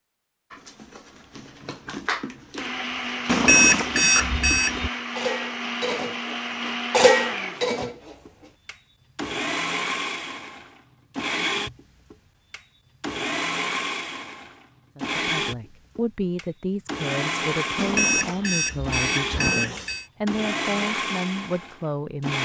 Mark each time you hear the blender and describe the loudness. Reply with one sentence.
You can hear the blender from 2.5 to 22.4 s, at a steady volume.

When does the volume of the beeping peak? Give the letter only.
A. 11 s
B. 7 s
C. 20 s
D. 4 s
D.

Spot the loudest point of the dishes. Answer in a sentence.
The volume of the dishes peaks at 7 seconds.